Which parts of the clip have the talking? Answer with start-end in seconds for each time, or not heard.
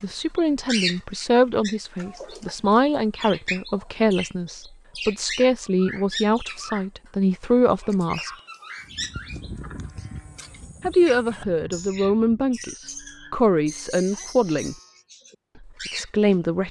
0.0-8.3, 10.8-14.8, 15.7-16.6.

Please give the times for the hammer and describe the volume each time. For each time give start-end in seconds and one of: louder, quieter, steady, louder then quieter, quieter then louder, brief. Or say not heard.
not heard.